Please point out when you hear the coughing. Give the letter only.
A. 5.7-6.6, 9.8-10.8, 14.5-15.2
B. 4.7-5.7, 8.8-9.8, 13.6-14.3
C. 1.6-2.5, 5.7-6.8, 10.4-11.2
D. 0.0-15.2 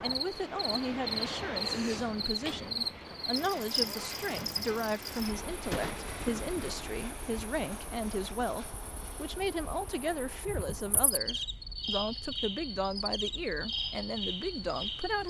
C.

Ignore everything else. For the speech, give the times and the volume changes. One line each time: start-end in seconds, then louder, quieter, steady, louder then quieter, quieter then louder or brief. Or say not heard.
0.0-15.2 steady.